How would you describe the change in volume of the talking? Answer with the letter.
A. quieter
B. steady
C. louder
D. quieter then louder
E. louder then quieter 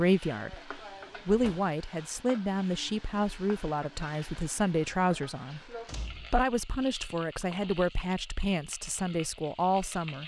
B.